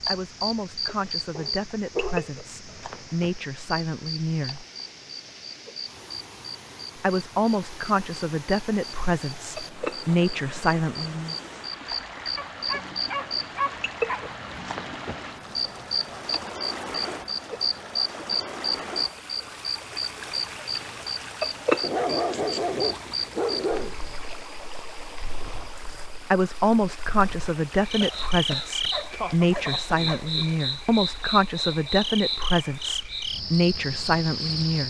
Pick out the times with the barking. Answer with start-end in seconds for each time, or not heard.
1.4-2.9, 12.3-14.3, 21.8-24.0, 28.8-30.4.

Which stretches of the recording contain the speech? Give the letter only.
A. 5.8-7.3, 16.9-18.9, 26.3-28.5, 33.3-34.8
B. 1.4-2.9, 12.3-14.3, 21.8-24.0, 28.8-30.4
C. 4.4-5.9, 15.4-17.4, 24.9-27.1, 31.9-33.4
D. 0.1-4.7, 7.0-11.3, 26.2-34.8
D.